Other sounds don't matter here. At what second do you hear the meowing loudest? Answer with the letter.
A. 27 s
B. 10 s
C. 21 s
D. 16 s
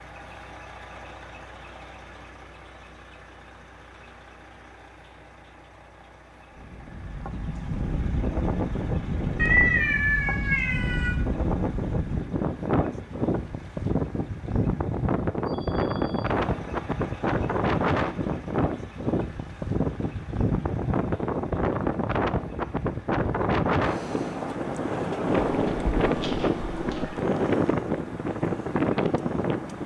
B.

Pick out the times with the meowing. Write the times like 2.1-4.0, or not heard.
9.3-11.1, 25.5-27.1.